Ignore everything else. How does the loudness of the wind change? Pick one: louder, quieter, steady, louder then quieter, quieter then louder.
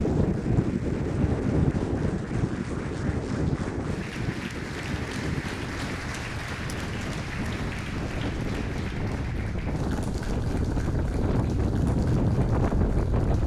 quieter then louder.